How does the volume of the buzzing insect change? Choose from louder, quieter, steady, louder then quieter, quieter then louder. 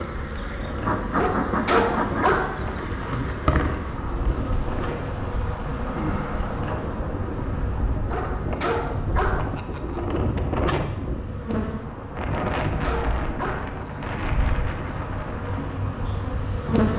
quieter.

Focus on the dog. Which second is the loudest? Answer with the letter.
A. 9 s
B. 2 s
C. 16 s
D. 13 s
B.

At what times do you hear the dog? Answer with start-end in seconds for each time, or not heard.
1.1-2.6, 8.1-9.6, 12.3-13.8.